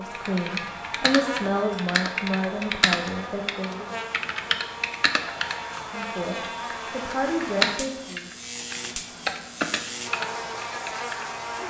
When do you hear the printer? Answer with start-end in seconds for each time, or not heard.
not heard.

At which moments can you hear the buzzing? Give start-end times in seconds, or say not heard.
0.0-11.6.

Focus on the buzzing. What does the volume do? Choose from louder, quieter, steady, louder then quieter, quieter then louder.
steady.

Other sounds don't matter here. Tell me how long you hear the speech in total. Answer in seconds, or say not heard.
6 s.